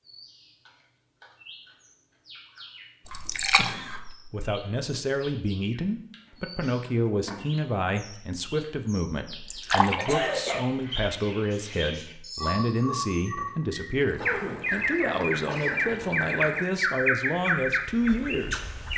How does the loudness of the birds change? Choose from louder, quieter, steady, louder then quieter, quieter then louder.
louder.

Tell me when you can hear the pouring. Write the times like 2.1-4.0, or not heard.
3.0-3.8, 9.4-10.3, 14.0-16.6.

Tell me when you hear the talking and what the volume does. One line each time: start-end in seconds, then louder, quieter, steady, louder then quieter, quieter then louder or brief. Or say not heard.
4.2-18.6 steady.